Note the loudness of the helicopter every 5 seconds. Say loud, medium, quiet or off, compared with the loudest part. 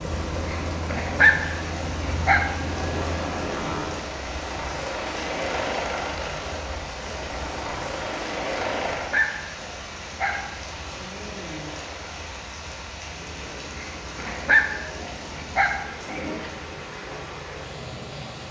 loud, loud, quiet, quiet.